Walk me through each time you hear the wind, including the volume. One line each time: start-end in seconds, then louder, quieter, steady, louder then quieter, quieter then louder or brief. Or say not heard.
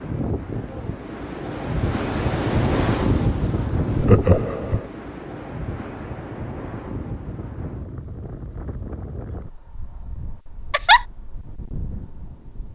0.0-12.7 quieter.